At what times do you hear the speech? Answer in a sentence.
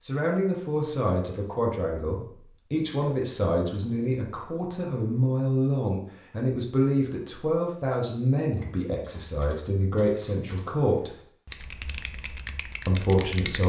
The speech can be heard from 0.0 to 11.1 s and from 12.8 to 13.6 s.